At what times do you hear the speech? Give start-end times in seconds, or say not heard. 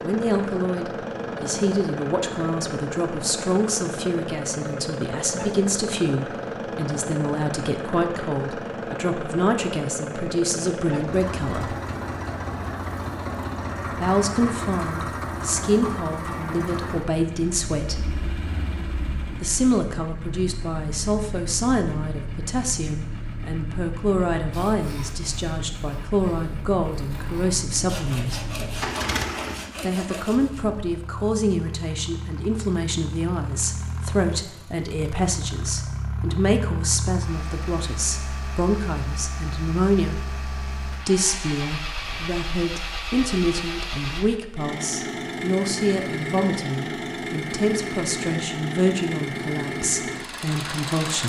0.0-11.8, 13.9-17.9, 19.4-28.4, 29.8-40.2, 41.0-51.2.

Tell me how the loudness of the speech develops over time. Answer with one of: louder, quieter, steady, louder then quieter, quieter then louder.
steady.